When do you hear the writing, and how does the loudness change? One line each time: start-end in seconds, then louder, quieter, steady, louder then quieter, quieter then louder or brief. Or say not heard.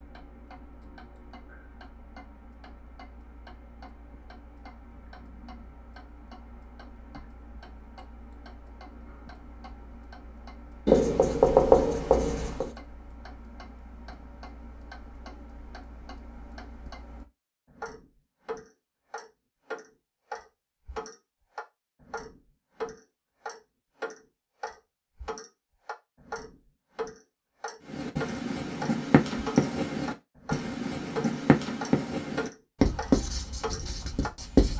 10.8-12.7 brief
27.9-34.7 steady.